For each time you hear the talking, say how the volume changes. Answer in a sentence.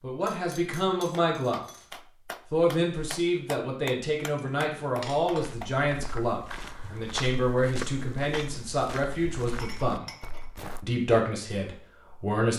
The talking can be heard briefly from 0.0 to 1.6 s; from 2.5 to 10.1 s, at a steady volume; and briefly from 10.8 to 12.5 s.